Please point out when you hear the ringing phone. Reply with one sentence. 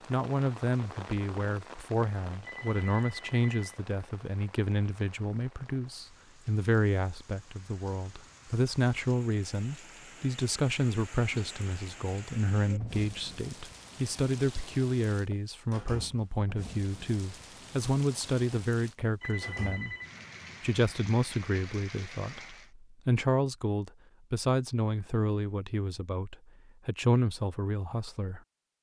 The ringing phone can be heard from 2.4 to 3.7 s and from 19.2 to 20.1 s.